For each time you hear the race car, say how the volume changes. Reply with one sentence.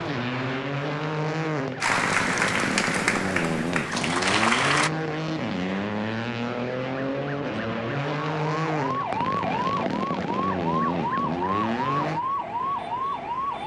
The race car can be heard from 0.0 to 12.2 s, at a steady volume.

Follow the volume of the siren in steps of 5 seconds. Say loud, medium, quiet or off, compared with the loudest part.
off, loud, loud.